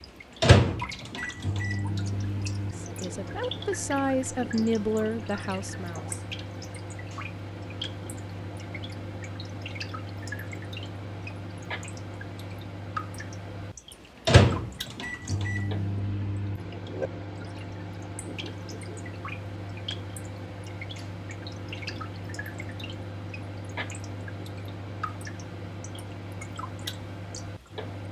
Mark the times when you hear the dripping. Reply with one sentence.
The dripping can be heard from 0.0 to 28.0 s.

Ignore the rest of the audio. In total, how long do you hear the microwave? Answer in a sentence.
The microwave can be heard for 28 seconds in total.